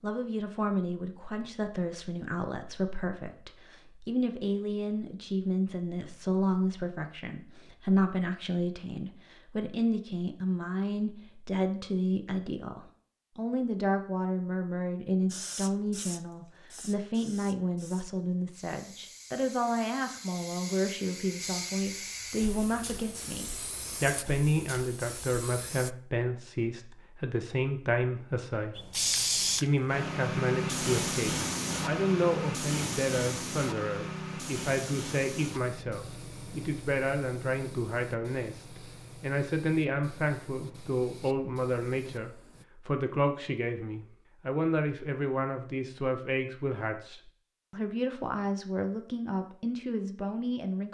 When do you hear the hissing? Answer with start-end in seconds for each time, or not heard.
15.3-25.9, 28.8-42.6.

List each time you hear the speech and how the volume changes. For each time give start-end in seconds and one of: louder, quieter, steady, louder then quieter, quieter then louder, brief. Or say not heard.
0.0-28.9 steady
29.6-50.8 steady.